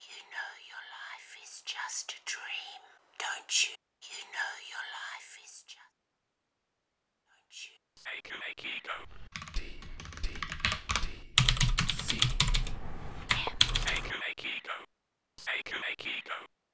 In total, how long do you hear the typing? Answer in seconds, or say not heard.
5 s.